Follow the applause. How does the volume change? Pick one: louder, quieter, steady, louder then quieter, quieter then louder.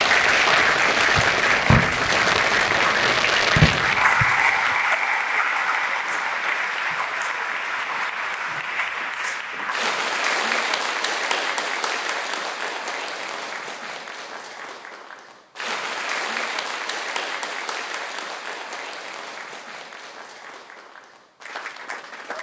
quieter.